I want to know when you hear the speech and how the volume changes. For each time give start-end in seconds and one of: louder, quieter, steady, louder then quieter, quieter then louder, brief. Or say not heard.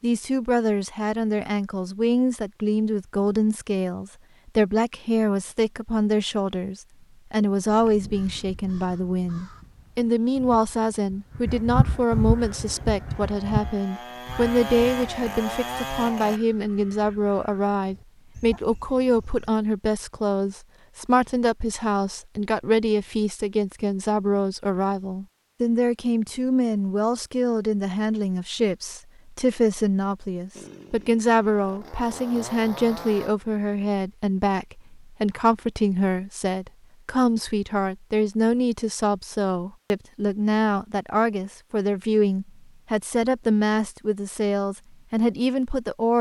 0.0-46.1 steady.